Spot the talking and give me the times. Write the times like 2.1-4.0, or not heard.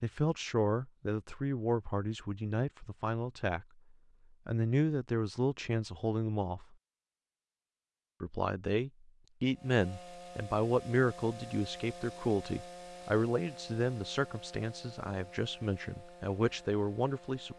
0.0-3.6, 4.5-6.8, 8.2-17.5.